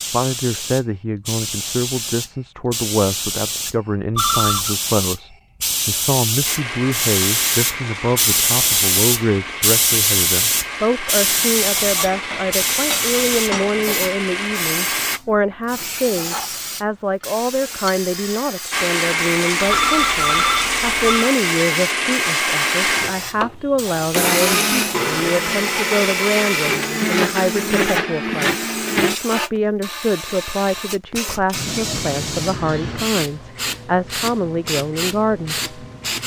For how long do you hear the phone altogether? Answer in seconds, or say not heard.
2 s.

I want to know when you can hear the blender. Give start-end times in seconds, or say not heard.
6.5-15.2, 18.7-29.1.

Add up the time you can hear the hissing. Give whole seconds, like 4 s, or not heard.
36 s.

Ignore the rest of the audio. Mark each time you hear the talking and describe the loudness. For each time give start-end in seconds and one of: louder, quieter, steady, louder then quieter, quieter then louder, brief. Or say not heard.
0.0-35.7 steady.